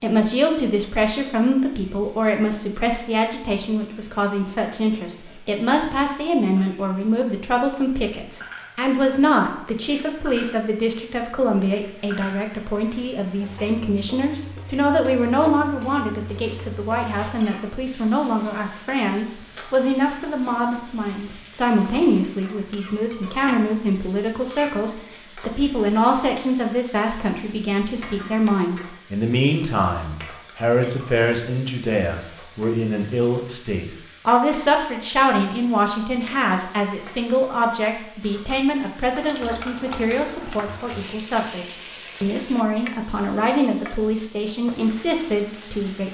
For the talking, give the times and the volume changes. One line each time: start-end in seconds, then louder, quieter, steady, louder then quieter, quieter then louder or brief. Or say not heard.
0.0-46.0 steady.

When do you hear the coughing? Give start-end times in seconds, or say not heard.
not heard.